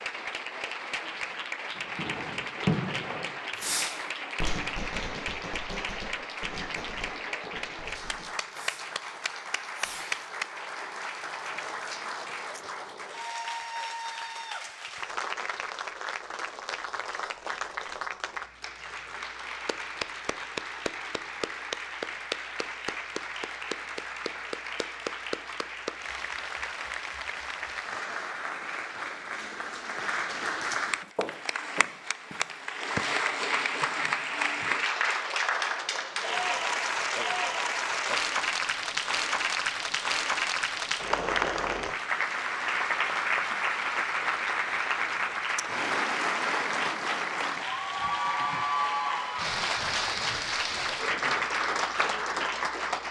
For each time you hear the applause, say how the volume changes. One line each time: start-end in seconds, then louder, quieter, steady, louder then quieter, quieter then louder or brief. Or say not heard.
0.0-53.0 louder.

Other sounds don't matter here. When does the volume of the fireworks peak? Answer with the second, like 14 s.
3 s.